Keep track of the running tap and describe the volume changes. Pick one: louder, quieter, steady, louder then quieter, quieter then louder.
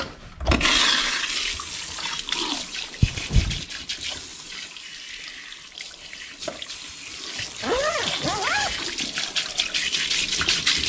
quieter then louder.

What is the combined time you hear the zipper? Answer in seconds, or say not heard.
2 s.